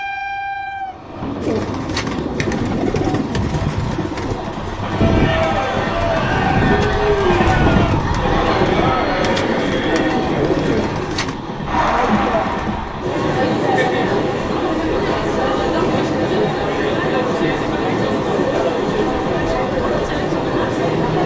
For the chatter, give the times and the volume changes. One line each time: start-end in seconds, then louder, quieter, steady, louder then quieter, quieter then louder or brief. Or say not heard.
4.8-21.2 steady.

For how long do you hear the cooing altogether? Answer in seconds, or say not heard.
10 s.